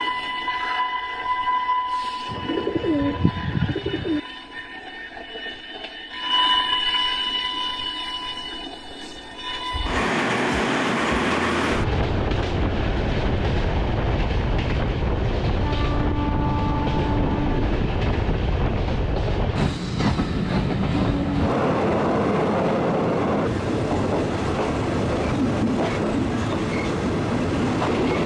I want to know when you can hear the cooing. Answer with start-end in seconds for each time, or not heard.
2.2-4.2.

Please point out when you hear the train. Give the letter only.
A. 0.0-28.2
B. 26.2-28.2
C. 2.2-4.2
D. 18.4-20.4
A.